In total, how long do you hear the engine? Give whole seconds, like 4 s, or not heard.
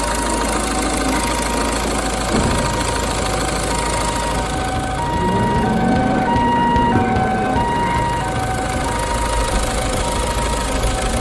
11 s.